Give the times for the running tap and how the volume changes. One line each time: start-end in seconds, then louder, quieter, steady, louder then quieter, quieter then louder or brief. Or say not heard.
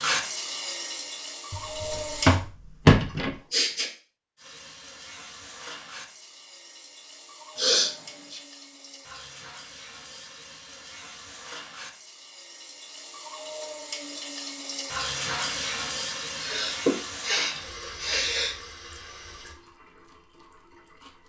0.0-2.4 brief
4.3-21.2 louder then quieter.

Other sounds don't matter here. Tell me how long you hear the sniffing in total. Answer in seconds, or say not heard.
4 s.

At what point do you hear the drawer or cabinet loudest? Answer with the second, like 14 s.
3 s.